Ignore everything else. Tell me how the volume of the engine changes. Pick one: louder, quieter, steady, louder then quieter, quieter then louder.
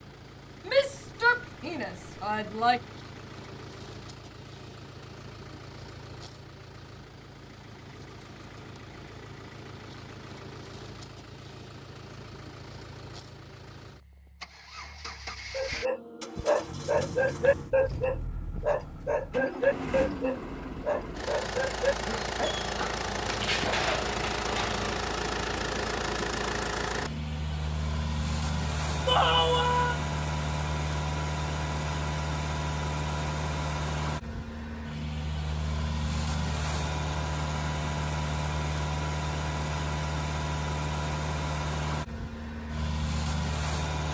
louder.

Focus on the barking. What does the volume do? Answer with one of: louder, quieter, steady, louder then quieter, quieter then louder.
quieter.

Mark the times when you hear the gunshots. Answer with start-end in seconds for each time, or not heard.
not heard.